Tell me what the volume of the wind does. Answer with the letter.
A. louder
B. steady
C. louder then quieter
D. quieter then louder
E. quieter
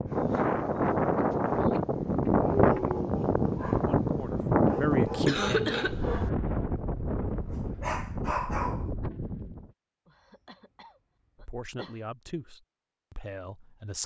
E.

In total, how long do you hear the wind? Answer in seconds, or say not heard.
10 s.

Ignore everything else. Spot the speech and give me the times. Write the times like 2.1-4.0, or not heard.
4.0-5.8, 11.3-14.0.